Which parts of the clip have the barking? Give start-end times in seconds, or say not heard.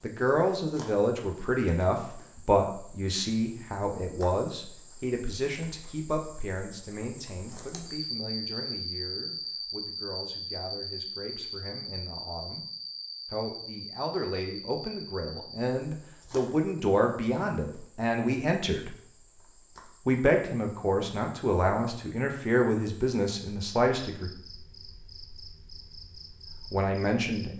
not heard.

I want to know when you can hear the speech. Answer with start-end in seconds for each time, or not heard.
0.0-12.7, 13.2-18.9, 20.1-24.3, 26.6-27.5.